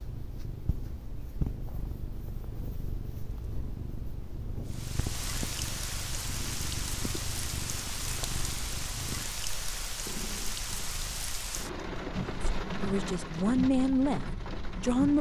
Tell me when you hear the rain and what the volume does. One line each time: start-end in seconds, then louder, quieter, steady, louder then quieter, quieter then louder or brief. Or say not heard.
4.7-15.1 steady.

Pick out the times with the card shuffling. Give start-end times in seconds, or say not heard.
not heard.